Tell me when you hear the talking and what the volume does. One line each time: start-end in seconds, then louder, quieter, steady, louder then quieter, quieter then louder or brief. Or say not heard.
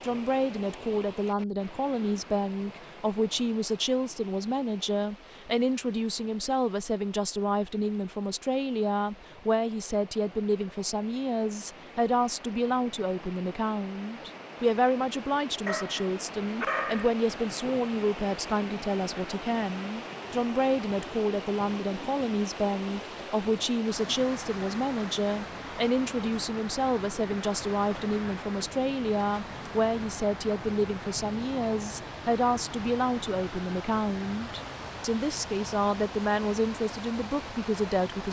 0.0-38.2 steady.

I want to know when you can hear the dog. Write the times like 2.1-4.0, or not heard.
15.7-17.1.